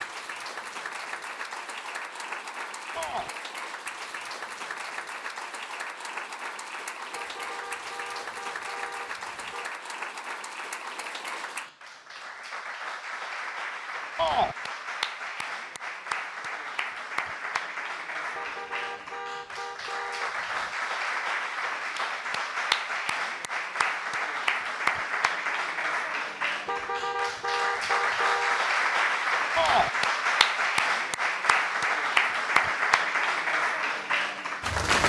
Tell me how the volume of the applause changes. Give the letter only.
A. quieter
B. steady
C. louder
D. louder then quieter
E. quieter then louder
C.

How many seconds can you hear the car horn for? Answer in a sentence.
You can hear the car horn for 7 seconds altogether.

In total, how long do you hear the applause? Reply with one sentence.
You can hear the applause for 35 seconds altogether.